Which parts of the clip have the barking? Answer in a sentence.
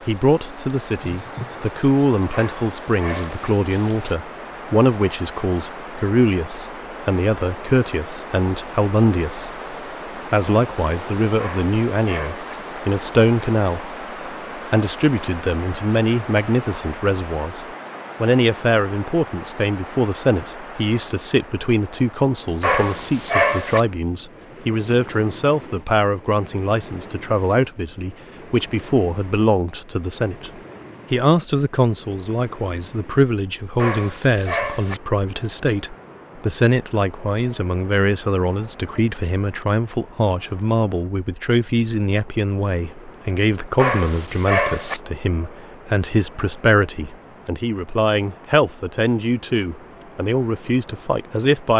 The barking can be heard from 2.3 to 3.5 s, from 11.3 to 12.6 s, from 22.6 to 23.8 s, from 33.8 to 35.0 s and from 43.8 to 45.0 s.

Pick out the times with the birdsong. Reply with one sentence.
You can't hear the birdsong here.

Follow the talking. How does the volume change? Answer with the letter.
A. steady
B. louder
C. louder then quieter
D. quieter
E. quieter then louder
A.